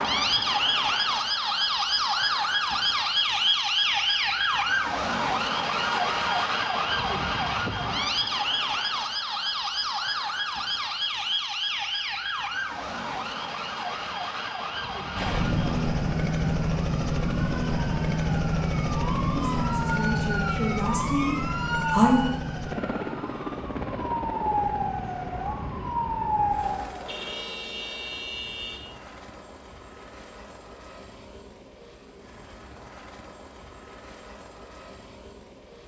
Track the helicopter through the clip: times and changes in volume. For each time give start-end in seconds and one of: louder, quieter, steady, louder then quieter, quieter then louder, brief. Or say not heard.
15.2-35.8 quieter.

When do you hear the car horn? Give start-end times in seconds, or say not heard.
5.8-6.5, 27.1-28.9.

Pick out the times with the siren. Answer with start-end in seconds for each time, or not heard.
0.0-27.1.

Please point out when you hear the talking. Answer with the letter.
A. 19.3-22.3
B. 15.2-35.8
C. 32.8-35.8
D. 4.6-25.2
A.